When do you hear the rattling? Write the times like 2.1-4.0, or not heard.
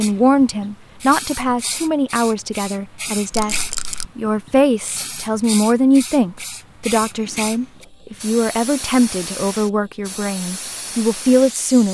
3.3-4.0.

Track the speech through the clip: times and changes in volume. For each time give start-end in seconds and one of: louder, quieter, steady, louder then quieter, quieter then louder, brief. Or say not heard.
0.0-11.8 steady.